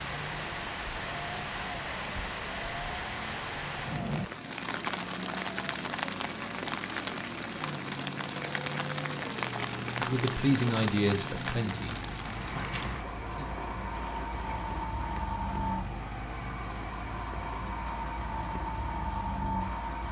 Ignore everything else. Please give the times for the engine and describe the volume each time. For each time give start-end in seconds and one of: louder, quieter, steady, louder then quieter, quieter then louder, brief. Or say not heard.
0.0-20.0 louder.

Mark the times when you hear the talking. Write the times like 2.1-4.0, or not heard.
10.0-13.6.